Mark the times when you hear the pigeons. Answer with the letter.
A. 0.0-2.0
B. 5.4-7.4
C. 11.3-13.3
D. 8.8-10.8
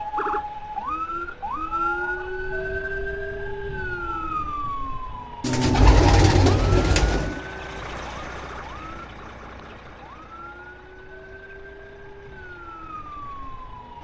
B.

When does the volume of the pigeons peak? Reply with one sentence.
The volume of the pigeons peaks at 6 seconds.